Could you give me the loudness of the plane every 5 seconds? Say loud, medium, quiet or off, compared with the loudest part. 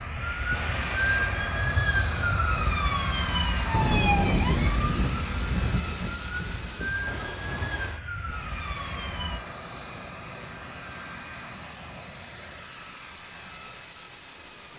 loud, medium, medium.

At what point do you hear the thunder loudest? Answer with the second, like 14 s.
4 s.